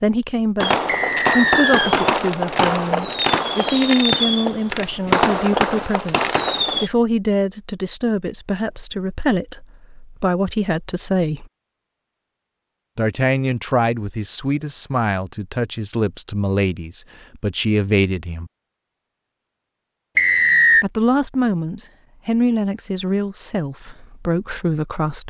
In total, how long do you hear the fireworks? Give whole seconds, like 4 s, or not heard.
6 s.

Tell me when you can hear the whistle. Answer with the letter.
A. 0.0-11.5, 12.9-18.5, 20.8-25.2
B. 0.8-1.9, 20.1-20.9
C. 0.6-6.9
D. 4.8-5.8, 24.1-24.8
B.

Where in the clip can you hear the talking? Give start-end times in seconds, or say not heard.
0.0-11.5, 12.9-18.5, 20.8-25.2.